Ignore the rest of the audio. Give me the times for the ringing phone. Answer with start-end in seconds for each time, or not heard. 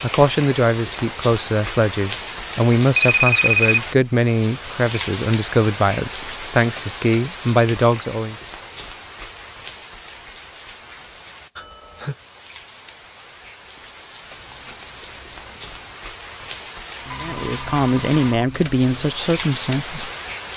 2.9-4.0, 11.6-12.2, 17.1-19.1.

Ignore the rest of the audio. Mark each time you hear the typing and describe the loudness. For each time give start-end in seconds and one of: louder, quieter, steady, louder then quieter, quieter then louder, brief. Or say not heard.
not heard.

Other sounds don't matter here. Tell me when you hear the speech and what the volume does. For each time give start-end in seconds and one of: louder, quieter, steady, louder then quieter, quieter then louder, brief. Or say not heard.
0.0-8.3 steady
17.2-20.1 brief.